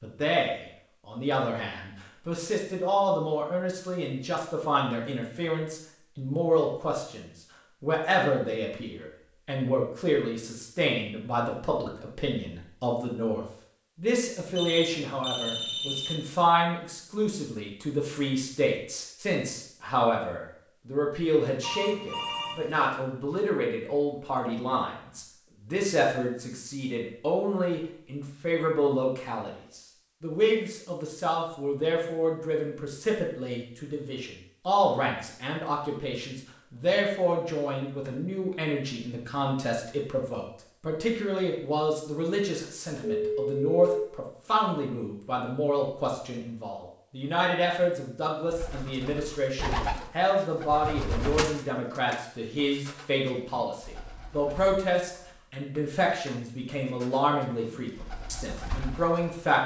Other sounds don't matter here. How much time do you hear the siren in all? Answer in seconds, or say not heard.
not heard.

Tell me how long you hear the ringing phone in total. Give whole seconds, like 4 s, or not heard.
4 s.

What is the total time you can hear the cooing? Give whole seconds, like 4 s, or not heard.
11 s.